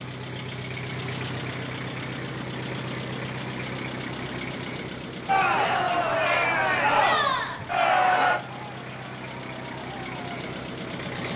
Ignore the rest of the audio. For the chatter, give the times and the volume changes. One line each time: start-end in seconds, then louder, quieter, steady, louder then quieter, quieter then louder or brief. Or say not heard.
5.2-11.3 quieter.